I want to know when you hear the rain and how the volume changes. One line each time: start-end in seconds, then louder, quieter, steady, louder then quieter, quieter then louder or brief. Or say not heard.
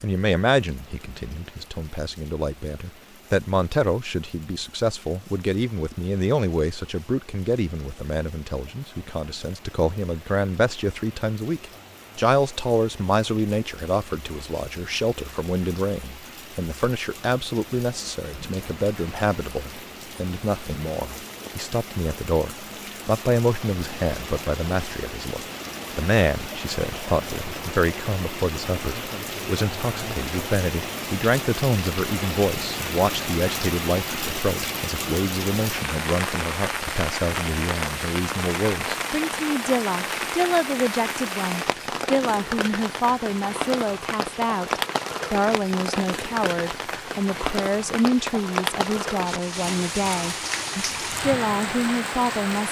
0.0-52.6 louder.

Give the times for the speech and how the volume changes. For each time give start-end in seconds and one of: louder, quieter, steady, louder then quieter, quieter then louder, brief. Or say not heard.
0.0-52.6 steady.